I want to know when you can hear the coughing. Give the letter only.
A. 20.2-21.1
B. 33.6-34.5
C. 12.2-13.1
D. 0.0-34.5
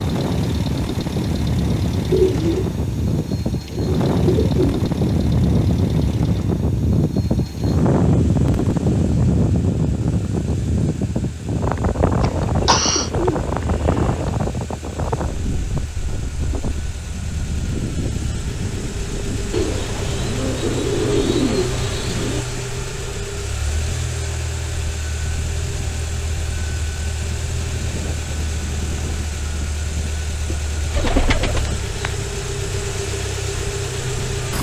C.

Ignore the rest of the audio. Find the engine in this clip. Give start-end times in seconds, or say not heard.
0.0-34.5.